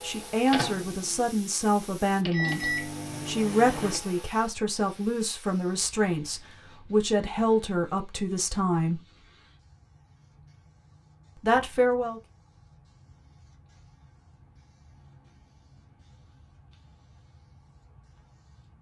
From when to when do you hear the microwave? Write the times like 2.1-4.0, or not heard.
0.0-4.2.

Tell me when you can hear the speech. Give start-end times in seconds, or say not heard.
0.0-9.0, 11.4-12.2.